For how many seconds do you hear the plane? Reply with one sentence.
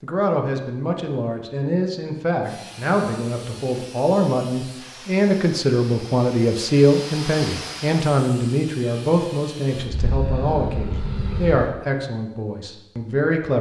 You can hear the plane for 2 seconds altogether.